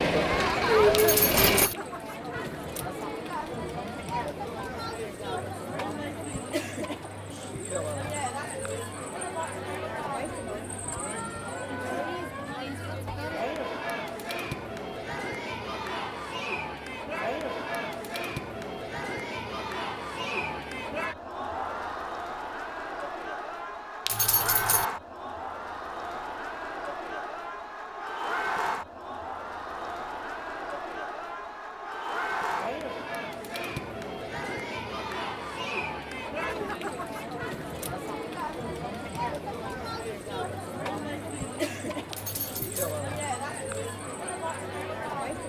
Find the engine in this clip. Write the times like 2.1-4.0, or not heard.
0.0-1.7.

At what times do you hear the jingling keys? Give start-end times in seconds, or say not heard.
0.9-1.8, 24.1-24.9, 42.1-43.0.